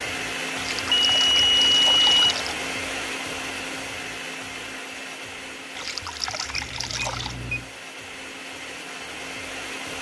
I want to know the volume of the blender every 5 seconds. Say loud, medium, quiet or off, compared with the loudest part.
loud, medium.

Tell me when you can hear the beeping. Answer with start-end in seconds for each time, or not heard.
0.9-2.4, 6.5-7.7.